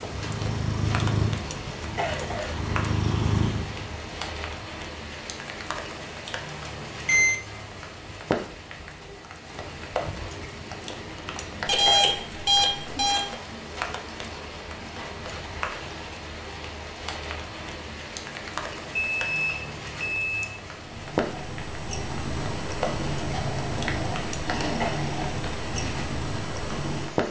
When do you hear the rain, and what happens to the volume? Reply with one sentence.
The rain can be heard from 0.0 to 27.2 s, at a steady volume.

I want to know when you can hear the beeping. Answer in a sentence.
You can hear the beeping from 6.2 to 7.3 s, from 11.7 to 13.2 s and from 19.0 to 20.4 s.